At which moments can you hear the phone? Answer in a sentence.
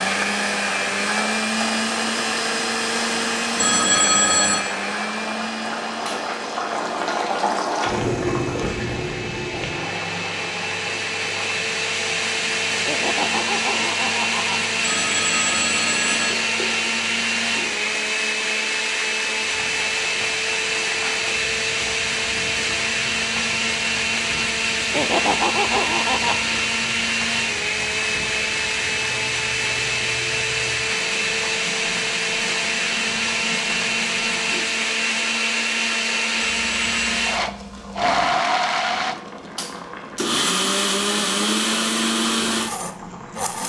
The phone can be heard from 3.5 to 4.6 s, from 14.8 to 16.4 s and from 36.6 to 37.1 s.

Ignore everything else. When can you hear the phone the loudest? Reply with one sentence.
The volume of the phone peaks at 4 seconds.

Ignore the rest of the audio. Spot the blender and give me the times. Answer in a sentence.
The blender can be heard from 0.0 to 43.6 s.